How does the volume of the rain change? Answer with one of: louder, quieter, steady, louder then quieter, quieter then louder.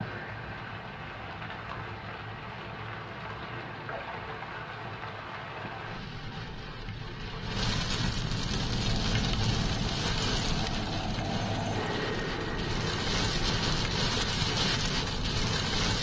louder.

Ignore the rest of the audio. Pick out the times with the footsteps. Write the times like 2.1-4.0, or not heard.
not heard.